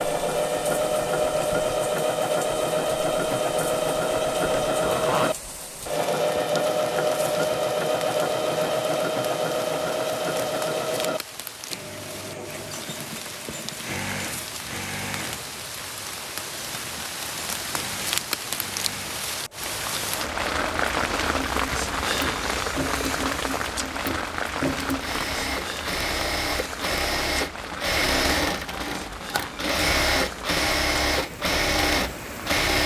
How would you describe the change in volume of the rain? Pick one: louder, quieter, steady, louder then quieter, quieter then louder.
louder then quieter.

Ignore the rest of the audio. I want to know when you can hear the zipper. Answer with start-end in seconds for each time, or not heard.
4.8-5.5.